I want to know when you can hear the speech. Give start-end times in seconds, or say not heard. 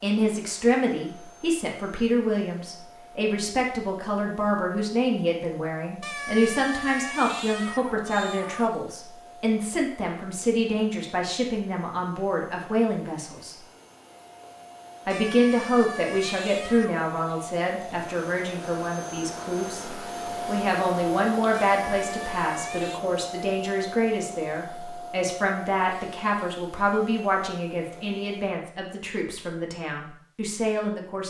0.0-13.6, 15.1-31.2.